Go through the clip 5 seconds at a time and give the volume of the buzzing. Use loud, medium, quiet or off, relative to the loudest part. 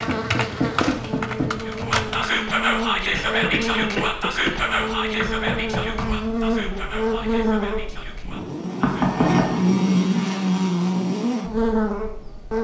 medium, loud, loud.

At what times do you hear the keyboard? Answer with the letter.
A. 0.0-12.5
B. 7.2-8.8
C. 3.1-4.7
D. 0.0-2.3
D.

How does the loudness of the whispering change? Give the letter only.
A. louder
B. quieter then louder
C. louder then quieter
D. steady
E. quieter
E.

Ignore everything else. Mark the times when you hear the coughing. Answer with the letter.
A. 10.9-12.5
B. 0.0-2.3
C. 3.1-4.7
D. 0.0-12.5
C.